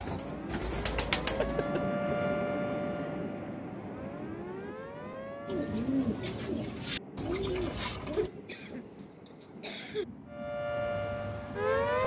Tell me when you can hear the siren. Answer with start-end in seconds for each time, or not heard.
0.0-6.0, 10.2-12.0.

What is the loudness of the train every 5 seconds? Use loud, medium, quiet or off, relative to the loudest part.
loud, medium, medium.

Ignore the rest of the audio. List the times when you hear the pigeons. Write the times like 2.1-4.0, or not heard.
0.0-1.9, 5.5-8.3.